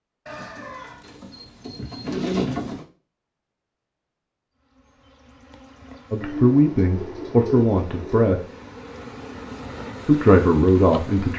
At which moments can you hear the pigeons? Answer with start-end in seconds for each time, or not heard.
0.2-2.9, 6.2-8.3.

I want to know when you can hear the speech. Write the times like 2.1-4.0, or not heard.
6.1-8.4, 10.1-11.3.